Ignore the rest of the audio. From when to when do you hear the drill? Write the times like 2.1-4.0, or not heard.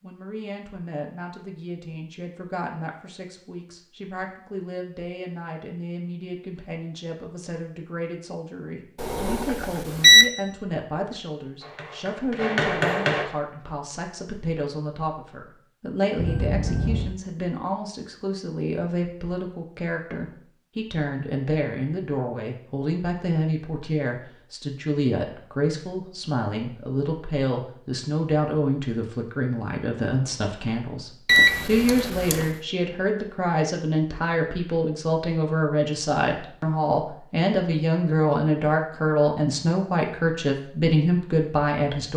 not heard.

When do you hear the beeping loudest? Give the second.
10 s.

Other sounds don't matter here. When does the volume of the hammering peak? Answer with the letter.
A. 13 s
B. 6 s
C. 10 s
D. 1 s
A.